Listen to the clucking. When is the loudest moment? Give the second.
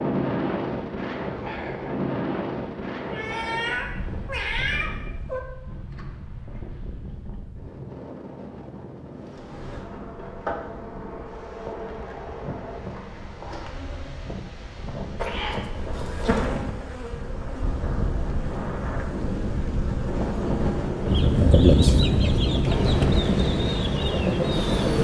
22 s.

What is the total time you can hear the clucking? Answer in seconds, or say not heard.
4 s.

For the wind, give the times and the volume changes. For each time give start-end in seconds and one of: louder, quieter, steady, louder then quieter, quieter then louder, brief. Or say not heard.
0.0-24.9 quieter then louder.